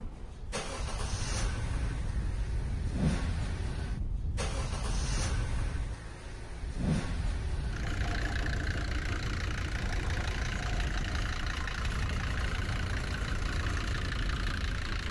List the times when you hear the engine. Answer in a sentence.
The engine can be heard from 0.0 to 15.0 s.